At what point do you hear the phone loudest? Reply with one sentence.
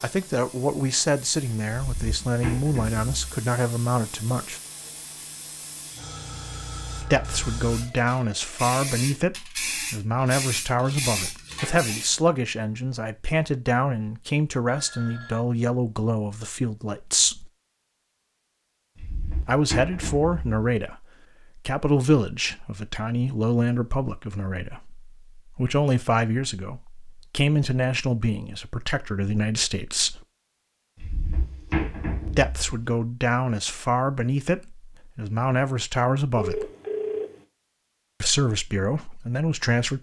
The volume of the phone peaks at 37 seconds.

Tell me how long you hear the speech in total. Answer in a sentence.
The speech can be heard for 32 seconds in total.